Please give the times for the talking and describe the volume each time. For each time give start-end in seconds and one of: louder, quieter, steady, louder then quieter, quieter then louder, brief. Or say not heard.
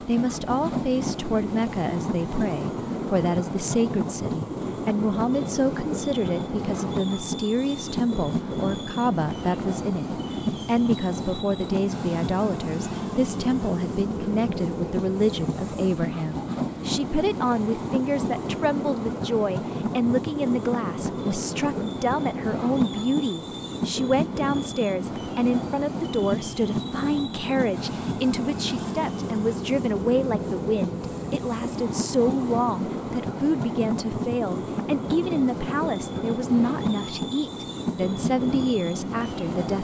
0.0-39.7 steady.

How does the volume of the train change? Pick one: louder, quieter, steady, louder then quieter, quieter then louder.
steady.